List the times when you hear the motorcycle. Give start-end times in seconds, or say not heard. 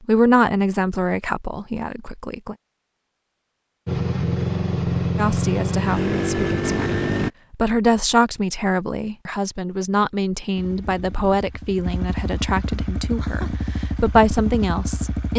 3.9-7.3, 10.6-15.3.